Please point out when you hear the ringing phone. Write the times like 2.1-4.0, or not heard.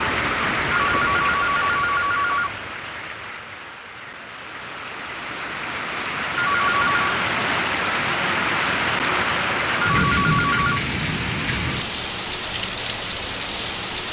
0.7-2.5, 6.3-7.0, 9.8-10.8.